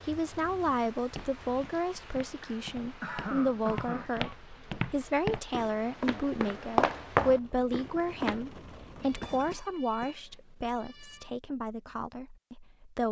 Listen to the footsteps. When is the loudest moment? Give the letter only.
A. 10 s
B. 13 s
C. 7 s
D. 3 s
C.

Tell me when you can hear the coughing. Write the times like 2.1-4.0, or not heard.
2.4-4.3, 9.2-10.2.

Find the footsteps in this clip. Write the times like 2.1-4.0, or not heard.
1.0-8.4.